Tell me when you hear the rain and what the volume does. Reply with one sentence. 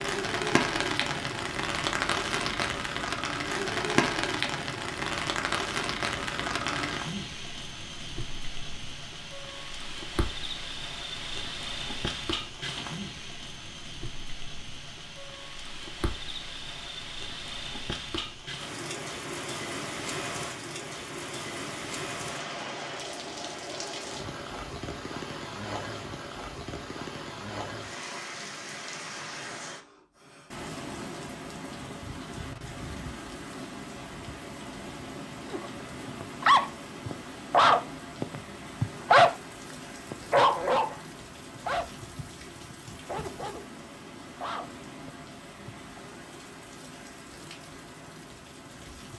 The rain can be heard from 0.0 to 49.1 s, getting quieter.